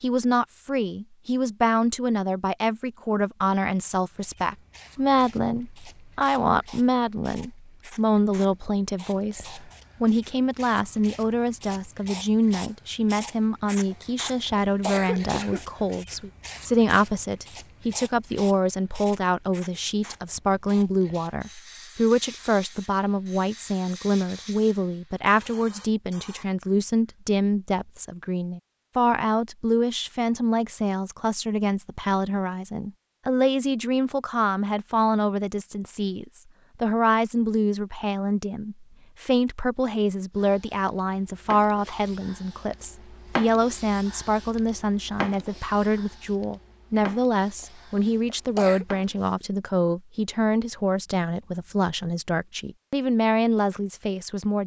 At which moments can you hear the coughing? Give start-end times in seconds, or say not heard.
13.9-15.6, 47.6-48.9.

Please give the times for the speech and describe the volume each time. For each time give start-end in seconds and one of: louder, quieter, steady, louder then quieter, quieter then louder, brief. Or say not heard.
0.0-54.6 steady.